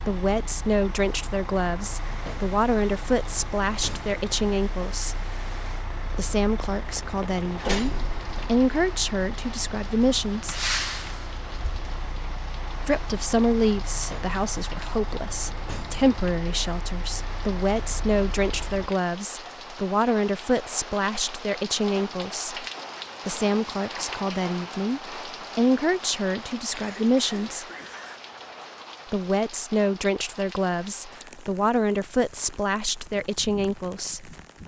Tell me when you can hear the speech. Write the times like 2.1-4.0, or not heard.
0.1-5.2, 6.2-10.6, 12.8-22.6, 23.2-27.6, 29.1-34.3.